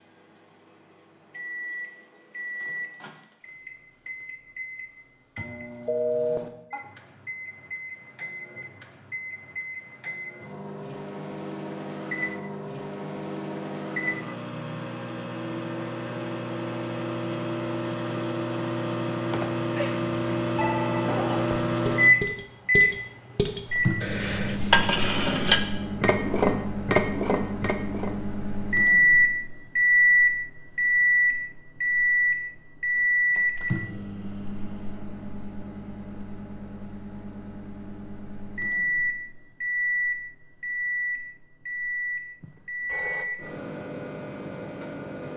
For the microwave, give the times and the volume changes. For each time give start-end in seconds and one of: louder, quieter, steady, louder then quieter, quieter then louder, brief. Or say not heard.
0.0-45.3 louder then quieter.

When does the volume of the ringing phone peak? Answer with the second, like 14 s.
6 s.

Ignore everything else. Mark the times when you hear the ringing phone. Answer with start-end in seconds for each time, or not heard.
5.8-6.4, 19.3-21.1, 42.4-43.2.